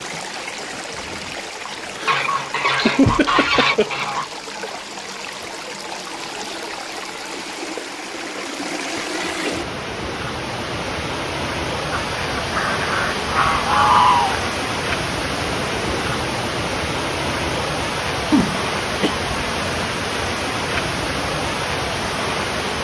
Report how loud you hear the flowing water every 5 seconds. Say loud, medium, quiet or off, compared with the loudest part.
medium, medium, loud, loud, loud.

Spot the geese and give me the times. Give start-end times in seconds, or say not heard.
2.0-4.3, 12.2-14.4.